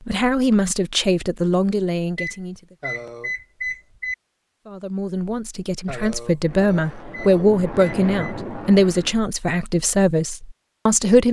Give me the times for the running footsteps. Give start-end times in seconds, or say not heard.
not heard.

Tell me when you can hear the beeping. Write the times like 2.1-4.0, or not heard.
2.1-4.2, 7.1-8.3.